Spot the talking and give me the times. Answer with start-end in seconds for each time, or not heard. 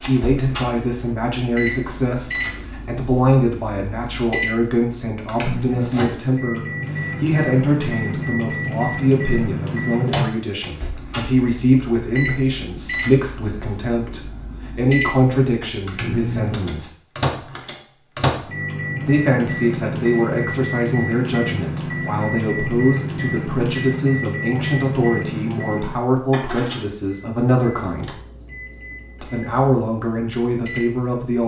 0.1-16.9, 19.1-28.1, 29.2-31.4.